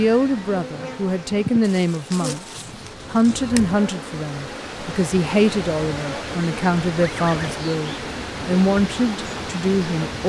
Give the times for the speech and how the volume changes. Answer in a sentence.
The speech can be heard from 0.0 to 10.2 s, at a steady volume.